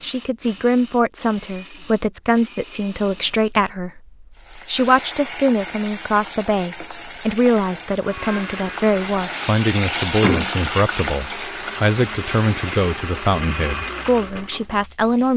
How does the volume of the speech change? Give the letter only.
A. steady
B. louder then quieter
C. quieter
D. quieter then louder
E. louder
A.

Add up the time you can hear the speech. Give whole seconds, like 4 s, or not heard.
15 s.